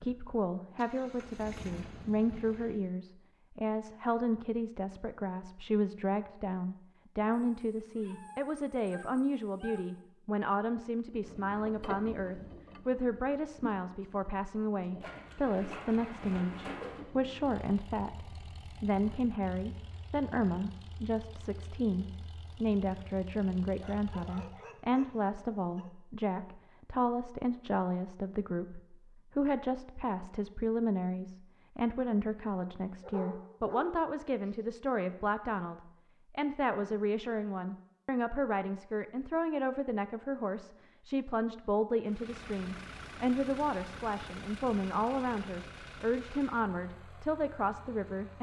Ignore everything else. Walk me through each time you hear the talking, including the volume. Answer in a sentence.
The talking can be heard from 0.0 to 48.3 s, at a steady volume.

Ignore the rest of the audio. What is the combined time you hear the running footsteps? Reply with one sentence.
The running footsteps can't be heard in this clip.